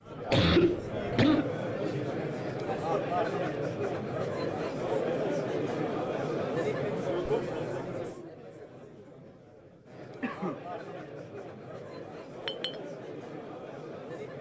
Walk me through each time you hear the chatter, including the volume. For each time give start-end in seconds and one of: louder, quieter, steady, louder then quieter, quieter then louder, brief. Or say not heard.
0.0-14.3 quieter.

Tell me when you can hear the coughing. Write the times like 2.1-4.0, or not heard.
0.3-1.5, 10.2-10.6.